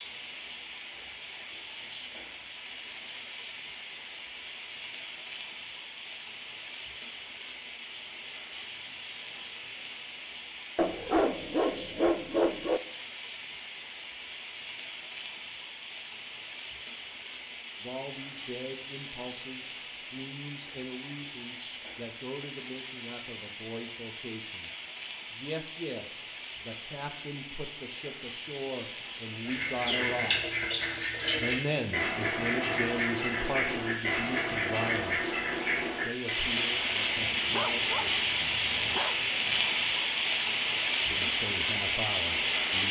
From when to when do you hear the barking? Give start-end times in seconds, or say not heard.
10.8-12.8, 37.1-39.6.